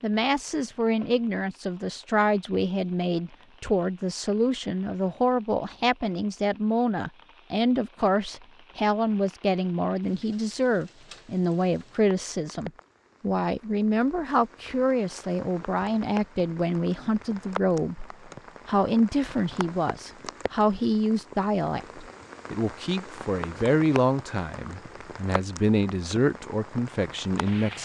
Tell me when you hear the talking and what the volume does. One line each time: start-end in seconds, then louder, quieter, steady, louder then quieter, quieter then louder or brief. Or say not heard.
0.0-27.8 steady.